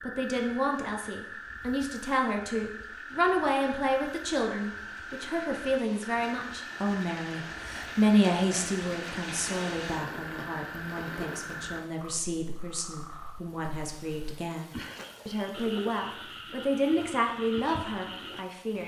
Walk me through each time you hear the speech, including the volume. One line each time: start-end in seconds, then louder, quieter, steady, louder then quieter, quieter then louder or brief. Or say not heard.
0.0-18.8 quieter then louder.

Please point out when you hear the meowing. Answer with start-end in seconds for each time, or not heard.
not heard.